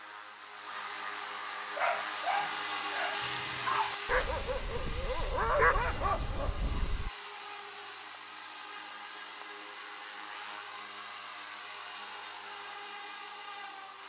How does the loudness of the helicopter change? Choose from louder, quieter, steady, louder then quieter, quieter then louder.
quieter.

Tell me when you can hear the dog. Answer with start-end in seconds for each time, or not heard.
1.7-7.1.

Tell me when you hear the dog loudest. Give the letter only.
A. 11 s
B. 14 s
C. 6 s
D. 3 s
C.